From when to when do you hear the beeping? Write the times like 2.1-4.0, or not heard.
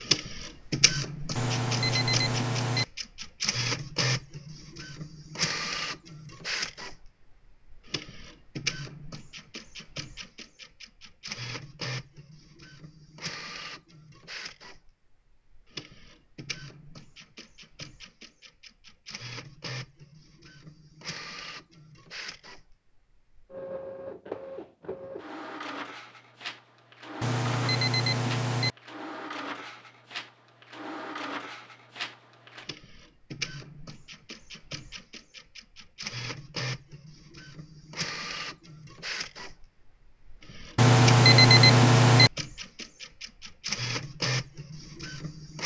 1.4-2.9, 27.2-28.7, 40.8-42.3.